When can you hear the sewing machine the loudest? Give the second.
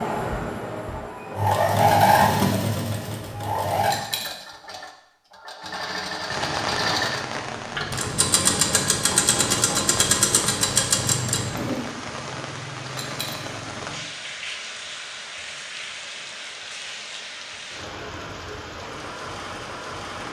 2 s.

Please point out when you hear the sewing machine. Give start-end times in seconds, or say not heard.
0.0-11.9.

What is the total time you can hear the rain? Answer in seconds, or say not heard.
14 s.